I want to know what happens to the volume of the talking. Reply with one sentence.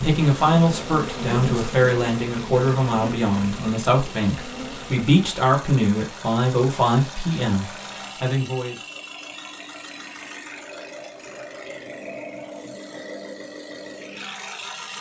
The volume of the talking stays about the same.